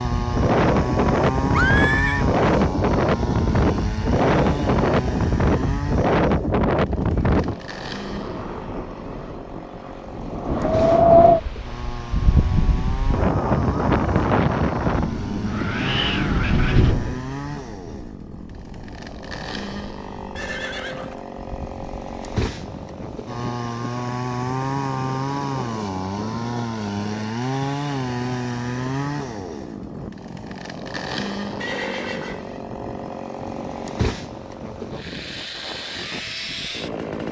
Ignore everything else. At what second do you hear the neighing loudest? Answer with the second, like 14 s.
2 s.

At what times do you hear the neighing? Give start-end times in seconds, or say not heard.
1.5-2.2, 20.4-21.2, 31.6-32.5.